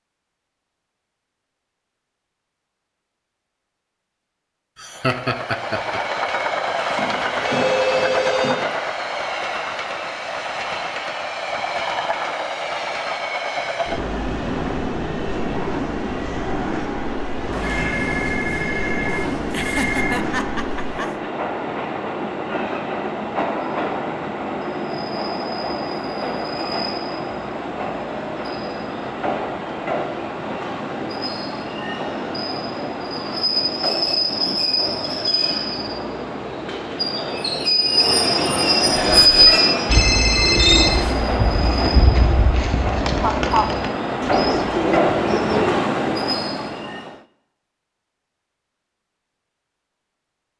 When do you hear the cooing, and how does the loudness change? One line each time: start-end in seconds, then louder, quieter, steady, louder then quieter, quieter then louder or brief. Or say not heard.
39.0-45.9 steady.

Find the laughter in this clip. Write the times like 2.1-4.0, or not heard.
4.8-6.2, 19.5-21.3, 43.2-43.7.